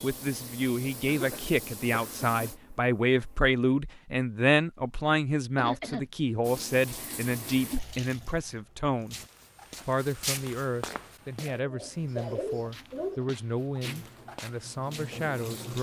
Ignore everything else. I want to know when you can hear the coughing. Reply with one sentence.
The coughing can be heard from 1.1 to 2.2 s, from 5.5 to 6.1 s and from 11.6 to 13.2 s.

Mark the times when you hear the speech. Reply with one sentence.
You can hear the speech from 0.0 to 9.2 s and from 9.8 to 15.7 s.